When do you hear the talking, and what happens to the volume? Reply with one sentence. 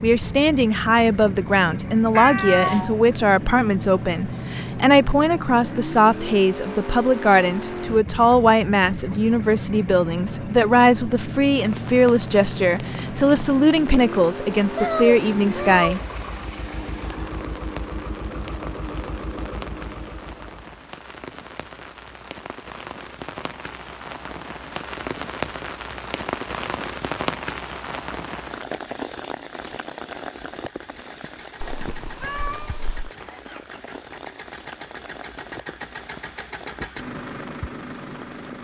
You can hear the talking from 0.0 to 16.0 s, at a steady volume.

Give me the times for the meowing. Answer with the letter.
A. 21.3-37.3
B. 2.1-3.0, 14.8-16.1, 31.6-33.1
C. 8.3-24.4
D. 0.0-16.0
B.